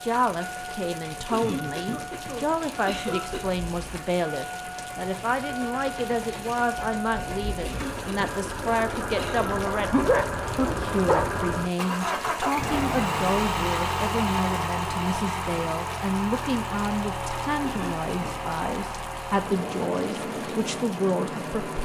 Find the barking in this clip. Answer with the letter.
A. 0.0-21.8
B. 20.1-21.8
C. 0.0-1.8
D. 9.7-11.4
D.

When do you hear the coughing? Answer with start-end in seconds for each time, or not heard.
1.3-3.4, 7.6-9.5, 17.6-18.5.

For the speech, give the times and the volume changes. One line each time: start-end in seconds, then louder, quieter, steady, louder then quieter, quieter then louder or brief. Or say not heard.
0.0-21.8 steady.